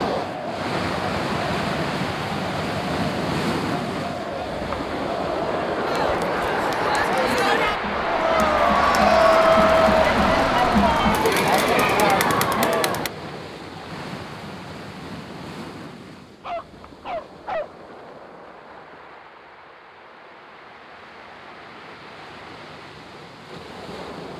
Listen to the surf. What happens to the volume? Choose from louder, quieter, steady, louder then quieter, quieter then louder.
quieter.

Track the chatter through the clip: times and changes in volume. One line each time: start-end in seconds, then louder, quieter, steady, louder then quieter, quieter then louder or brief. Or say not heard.
0.0-13.1 louder.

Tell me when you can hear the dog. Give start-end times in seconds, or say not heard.
16.4-17.7.